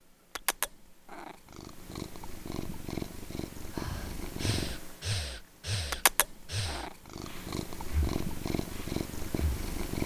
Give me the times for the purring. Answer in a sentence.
The purring can be heard from 0.1 to 10.0 s.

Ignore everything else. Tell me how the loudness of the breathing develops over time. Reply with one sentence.
The loudness of the breathing goes down.